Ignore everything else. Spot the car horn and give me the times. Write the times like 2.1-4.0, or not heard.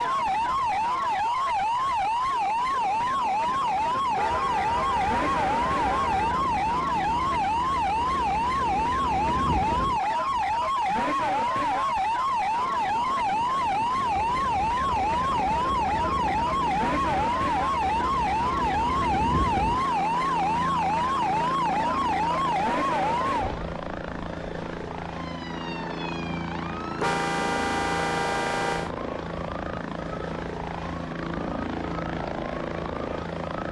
4.1-6.5, 26.9-28.9.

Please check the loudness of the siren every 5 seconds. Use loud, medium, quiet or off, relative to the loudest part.
loud, loud, loud, loud, loud, quiet, quiet.